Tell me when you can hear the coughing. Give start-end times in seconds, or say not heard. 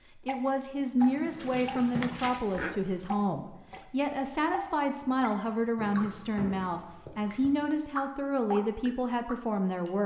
not heard.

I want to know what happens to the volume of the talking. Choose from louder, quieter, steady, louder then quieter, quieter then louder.
steady.